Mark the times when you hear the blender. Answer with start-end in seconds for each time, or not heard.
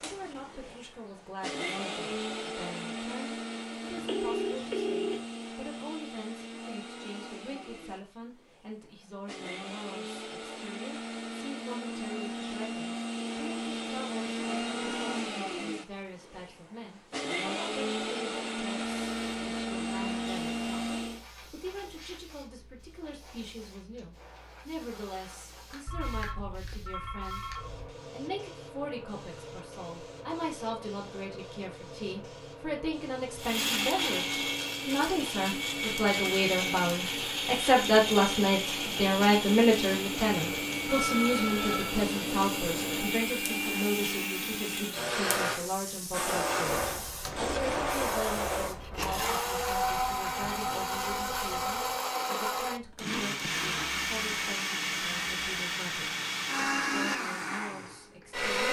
0.0-21.2, 33.4-58.6.